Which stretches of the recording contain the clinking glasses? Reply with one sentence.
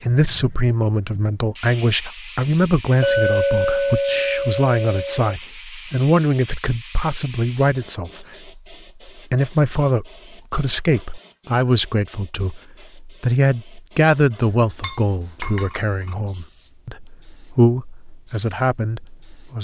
You can hear the clinking glasses from 3.0 to 5.2 s and from 14.8 to 16.1 s.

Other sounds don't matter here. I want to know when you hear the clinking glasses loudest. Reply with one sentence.
The loudest moment of the clinking glasses is at 3 seconds.